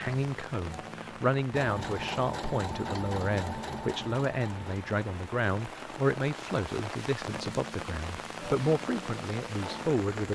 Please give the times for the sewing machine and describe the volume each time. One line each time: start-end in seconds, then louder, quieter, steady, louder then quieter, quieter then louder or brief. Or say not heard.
1.5-6.7 quieter.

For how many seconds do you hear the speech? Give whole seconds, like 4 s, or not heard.
10 s.